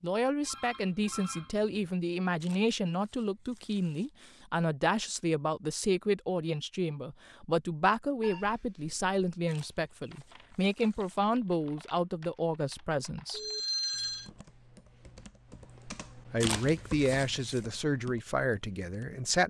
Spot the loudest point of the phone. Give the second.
14 s.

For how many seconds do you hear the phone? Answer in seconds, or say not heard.
3 s.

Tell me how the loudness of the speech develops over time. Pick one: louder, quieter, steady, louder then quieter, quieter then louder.
steady.